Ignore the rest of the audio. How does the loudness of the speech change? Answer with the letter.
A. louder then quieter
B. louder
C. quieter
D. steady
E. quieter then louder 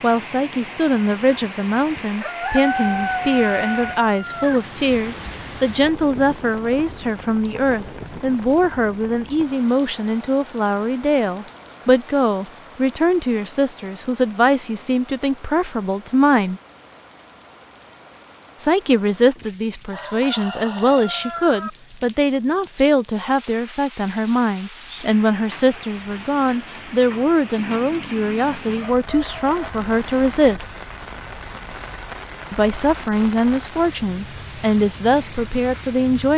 D.